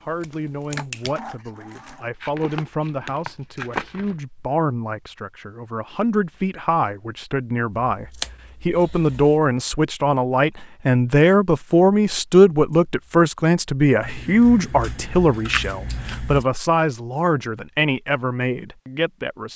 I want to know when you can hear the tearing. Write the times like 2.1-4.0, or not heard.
2.2-4.2.